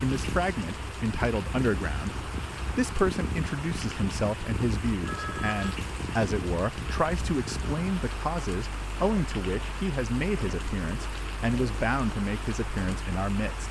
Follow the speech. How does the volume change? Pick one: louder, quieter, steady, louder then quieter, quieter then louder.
steady.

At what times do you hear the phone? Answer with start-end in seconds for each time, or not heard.
5.0-5.8.